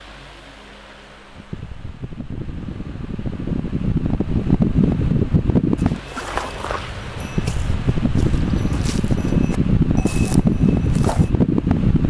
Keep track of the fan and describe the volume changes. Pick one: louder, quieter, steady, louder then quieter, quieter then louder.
louder.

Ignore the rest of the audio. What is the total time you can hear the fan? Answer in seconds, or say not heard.
12 s.